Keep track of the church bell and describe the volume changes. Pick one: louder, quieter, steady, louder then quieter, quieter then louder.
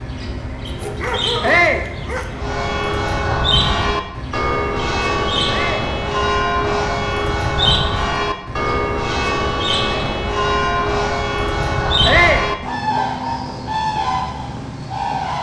steady.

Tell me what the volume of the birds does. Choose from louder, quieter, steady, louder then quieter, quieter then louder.
louder.